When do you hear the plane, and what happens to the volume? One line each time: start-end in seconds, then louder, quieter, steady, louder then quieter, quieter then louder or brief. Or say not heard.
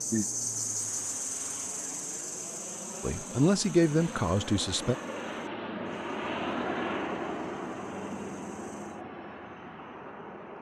0.0-10.5 louder then quieter.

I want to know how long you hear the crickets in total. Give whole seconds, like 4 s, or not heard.
9 s.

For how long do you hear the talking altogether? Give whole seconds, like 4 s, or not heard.
2 s.